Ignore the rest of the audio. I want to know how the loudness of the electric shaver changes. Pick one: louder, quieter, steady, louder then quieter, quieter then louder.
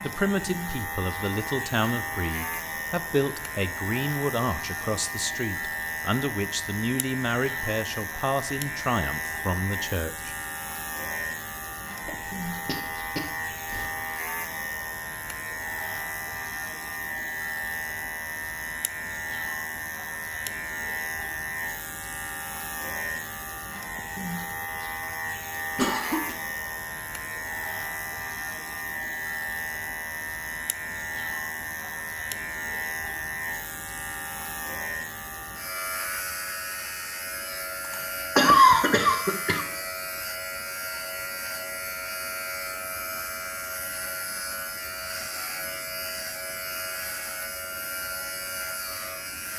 steady.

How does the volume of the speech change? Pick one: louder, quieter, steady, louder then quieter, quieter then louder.
steady.